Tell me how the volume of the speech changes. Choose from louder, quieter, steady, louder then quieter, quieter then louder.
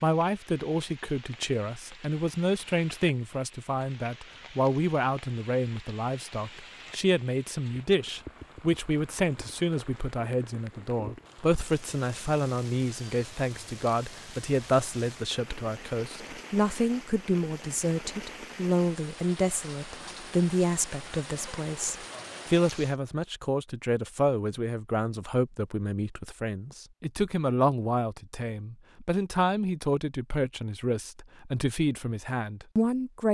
steady.